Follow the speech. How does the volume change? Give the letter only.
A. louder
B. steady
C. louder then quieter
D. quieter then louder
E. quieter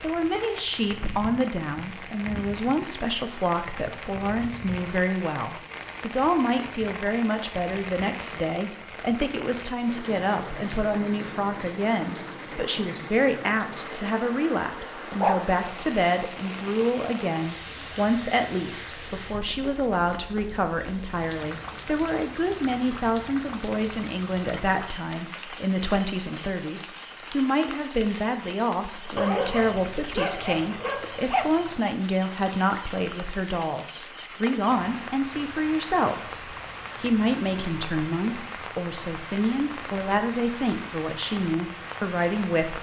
B.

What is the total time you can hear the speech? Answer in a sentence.
You can hear the speech for 43 seconds altogether.